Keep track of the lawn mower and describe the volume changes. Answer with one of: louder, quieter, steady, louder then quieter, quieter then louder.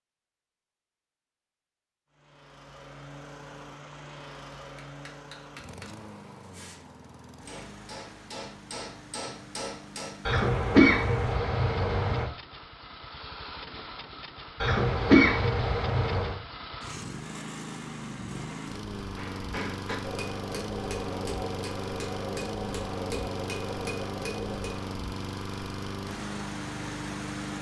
louder.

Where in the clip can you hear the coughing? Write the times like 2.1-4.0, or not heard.
10.2-12.2, 14.6-16.4.